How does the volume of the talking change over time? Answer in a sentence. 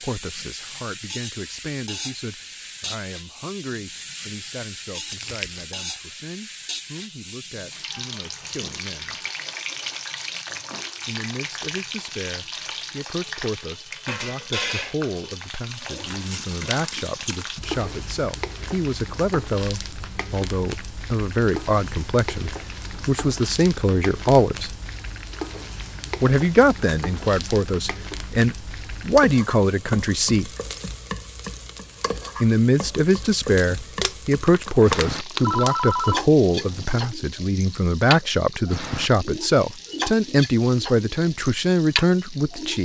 The loudness of the talking goes up.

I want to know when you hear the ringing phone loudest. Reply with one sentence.
The loudest moment of the ringing phone is at 36 seconds.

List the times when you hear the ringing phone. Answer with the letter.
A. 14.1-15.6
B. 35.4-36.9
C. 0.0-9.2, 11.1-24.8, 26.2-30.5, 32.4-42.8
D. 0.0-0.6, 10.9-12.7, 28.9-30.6
B.